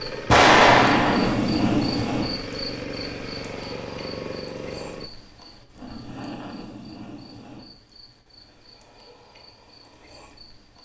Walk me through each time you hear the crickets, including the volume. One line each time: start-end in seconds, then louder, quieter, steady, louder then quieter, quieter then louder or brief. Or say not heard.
0.0-10.8 quieter.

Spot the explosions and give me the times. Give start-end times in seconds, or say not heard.
0.3-1.4.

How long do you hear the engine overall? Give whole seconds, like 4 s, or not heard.
5 s.